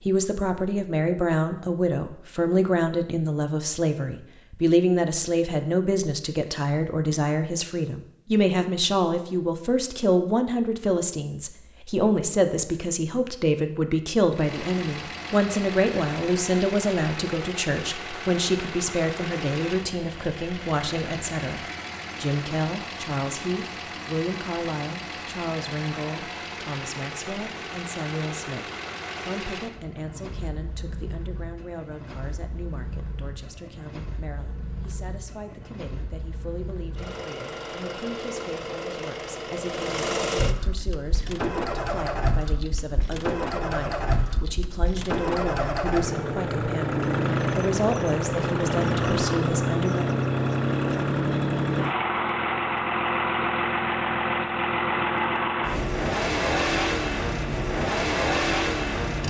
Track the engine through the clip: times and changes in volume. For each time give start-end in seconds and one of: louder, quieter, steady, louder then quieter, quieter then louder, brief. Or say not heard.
14.3-59.2 louder.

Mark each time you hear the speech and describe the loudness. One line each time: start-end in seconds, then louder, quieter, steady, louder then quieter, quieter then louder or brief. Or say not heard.
0.0-50.1 quieter then louder.